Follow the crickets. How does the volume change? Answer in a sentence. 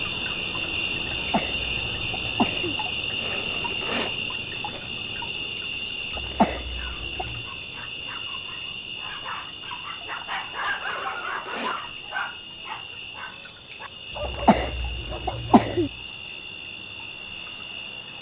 The volume of the crickets goes down.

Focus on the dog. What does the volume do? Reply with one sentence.
The volume of the dog goes up, then down.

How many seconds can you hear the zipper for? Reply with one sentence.
You can hear the zipper for 3 seconds altogether.